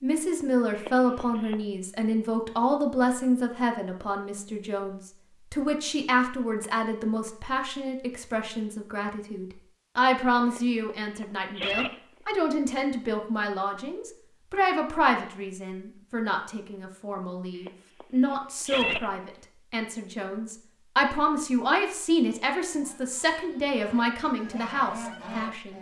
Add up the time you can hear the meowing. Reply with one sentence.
The meowing can be heard for 4 seconds in total.